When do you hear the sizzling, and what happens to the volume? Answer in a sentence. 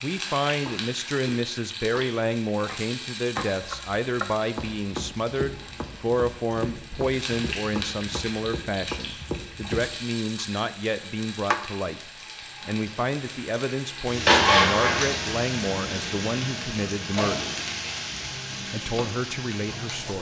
You can hear the sizzling from 0.0 to 20.1 s, getting louder then quieter.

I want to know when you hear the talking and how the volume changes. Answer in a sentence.
The talking can be heard from 0.0 to 17.4 s, at a steady volume; and briefly from 18.7 to 20.1 s.